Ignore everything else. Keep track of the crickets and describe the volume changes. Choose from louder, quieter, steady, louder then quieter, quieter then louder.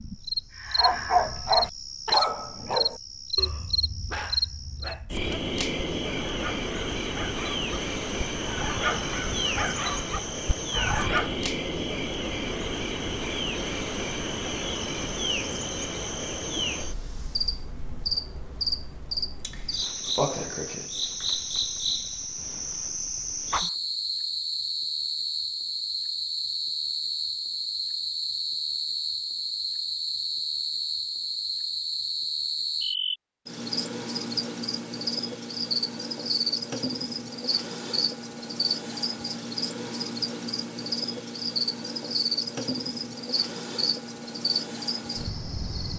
steady.